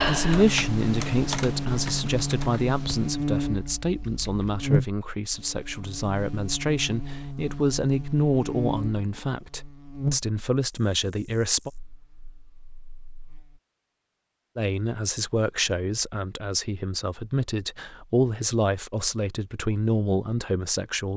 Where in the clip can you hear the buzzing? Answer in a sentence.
The buzzing can be heard from 0.0 to 13.6 s.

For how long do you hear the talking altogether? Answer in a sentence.
The talking can be heard for 18 seconds in total.